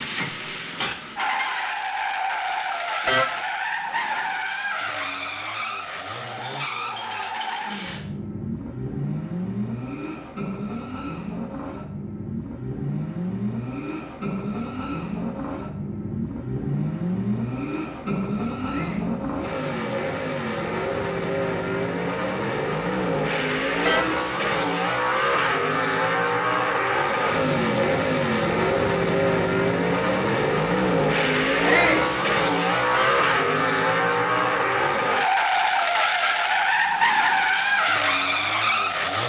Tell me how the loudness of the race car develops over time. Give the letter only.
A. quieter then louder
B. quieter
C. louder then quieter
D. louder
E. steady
D.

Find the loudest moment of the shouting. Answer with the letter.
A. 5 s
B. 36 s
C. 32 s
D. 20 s
C.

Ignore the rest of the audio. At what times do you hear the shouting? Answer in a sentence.
The shouting can be heard from 3.8 to 4.3 s, from 18.6 to 19.1 s and from 31.6 to 32.1 s.